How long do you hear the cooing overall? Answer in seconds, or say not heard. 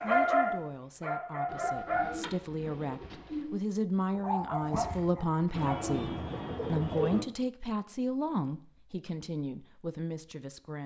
4 s.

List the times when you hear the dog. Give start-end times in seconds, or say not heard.
0.0-2.1, 4.1-5.8.